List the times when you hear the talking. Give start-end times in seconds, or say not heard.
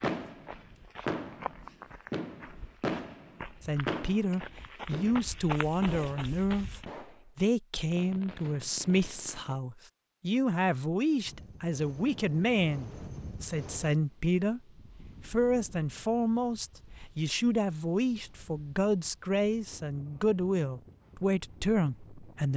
3.6-14.6, 15.2-22.5.